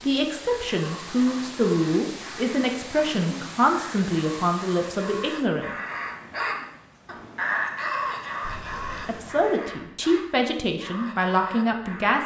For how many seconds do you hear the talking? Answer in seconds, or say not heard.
9 s.